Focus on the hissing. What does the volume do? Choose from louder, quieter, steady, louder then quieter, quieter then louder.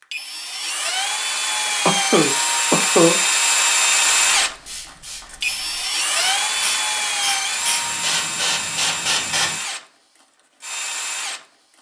louder.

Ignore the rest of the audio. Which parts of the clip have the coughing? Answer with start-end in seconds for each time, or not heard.
1.9-3.1.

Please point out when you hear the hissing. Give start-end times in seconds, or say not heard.
4.2-9.6.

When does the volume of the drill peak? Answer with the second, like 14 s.
4 s.